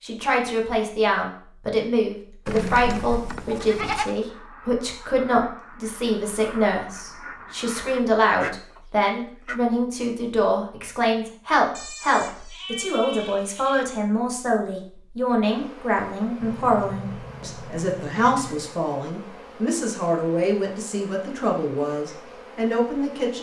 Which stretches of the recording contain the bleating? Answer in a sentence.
You can hear the bleating from 2.5 to 4.2 s, from 11.7 to 13.8 s and from 16.4 to 18.8 s.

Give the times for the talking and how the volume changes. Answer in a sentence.
You can hear the talking from 0.0 to 23.3 s, at a steady volume.